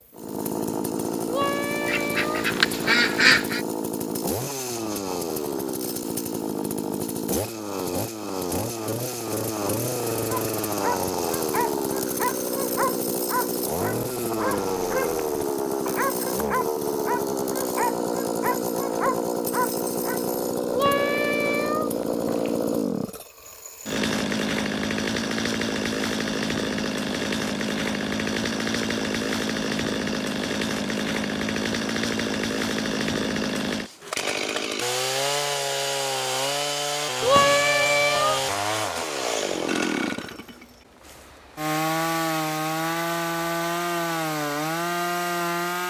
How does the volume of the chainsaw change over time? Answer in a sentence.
The volume of the chainsaw stays about the same.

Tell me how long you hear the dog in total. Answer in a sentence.
The dog can be heard for 10 seconds in total.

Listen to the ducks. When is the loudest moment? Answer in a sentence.
The volume of the ducks peaks at 3 seconds.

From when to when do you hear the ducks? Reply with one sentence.
You can hear the ducks from 1.9 to 3.6 s.